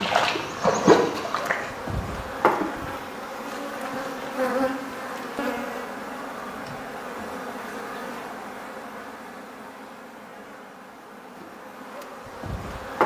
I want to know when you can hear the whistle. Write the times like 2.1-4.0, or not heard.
not heard.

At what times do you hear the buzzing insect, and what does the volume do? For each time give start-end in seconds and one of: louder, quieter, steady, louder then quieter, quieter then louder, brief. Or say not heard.
0.0-13.0 quieter.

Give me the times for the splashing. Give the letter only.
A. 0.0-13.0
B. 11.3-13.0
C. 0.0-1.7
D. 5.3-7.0
C.